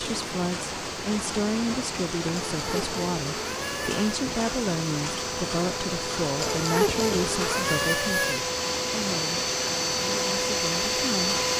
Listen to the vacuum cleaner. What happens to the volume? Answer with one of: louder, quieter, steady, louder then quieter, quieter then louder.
louder.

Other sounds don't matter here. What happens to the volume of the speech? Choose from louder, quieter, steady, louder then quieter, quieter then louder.
quieter.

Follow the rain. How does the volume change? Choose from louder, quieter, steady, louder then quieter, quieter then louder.
steady.